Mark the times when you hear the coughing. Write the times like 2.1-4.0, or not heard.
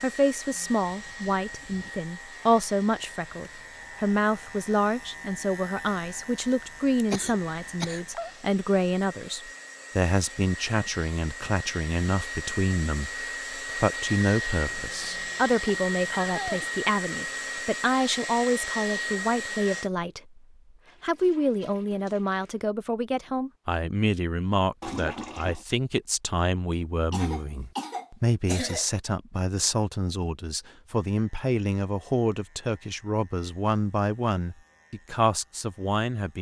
7.1-8.3, 14.7-16.7, 27.1-28.9.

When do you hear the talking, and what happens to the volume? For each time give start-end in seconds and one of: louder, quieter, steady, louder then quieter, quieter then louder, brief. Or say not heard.
0.0-20.4 steady
21.0-36.3 steady.